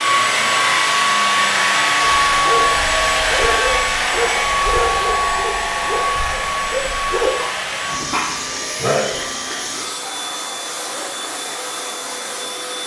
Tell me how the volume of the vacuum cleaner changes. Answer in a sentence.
The volume of the vacuum cleaner goes down.